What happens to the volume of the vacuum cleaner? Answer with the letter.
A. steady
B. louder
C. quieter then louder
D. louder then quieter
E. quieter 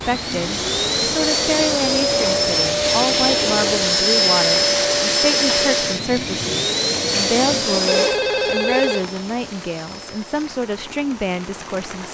E.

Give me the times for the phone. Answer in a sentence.
The phone can be heard from 7.8 to 9.1 s.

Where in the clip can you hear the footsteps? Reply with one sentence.
You can't hear the footsteps here.